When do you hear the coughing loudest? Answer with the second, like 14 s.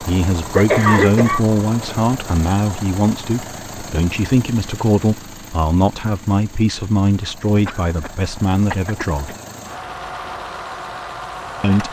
1 s.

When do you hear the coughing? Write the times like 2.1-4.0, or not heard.
0.6-1.4, 7.7-9.2.